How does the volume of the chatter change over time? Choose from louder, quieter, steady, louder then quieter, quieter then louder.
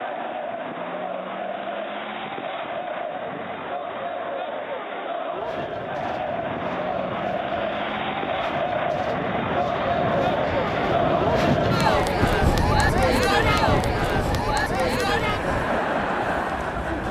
louder.